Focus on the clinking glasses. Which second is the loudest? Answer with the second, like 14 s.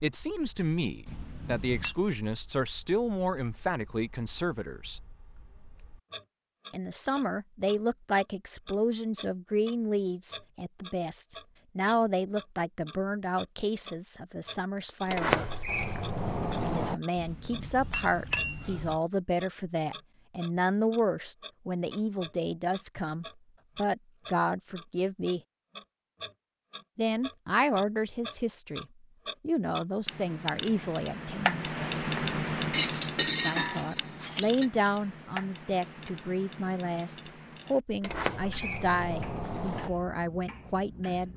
33 s.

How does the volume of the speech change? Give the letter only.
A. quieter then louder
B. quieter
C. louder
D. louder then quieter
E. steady
E.